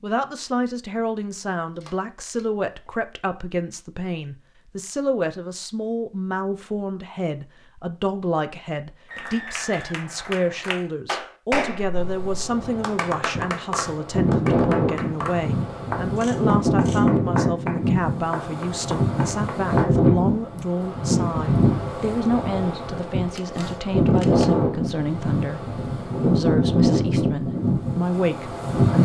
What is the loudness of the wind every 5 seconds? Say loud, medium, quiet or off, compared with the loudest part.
off, off, loud, loud, loud, loud.